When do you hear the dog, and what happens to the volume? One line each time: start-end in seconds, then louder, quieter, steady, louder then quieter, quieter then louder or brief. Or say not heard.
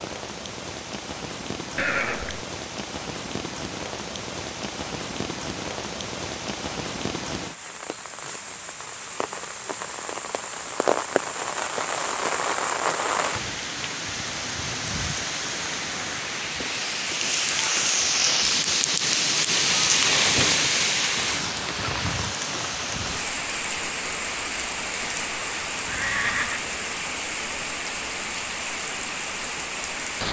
not heard.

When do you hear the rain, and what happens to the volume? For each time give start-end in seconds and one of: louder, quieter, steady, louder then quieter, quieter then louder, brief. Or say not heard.
0.0-30.2 louder then quieter.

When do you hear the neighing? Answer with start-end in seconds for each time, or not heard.
1.8-2.5, 25.9-26.6.